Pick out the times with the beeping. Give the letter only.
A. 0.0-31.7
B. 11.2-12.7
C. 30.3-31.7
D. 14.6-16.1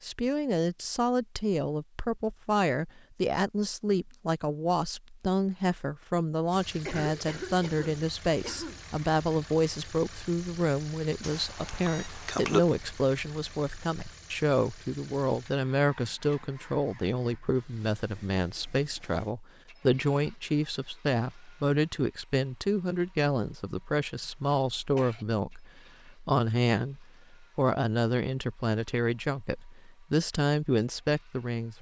B.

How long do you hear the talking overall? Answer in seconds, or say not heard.
32 s.